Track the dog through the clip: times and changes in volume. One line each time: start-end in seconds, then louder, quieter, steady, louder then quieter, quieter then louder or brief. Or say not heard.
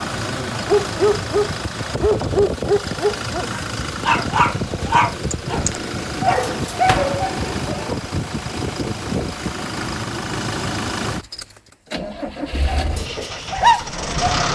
0.5-8.1 steady
12.5-14.4 brief.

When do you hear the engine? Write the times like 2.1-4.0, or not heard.
0.0-14.4.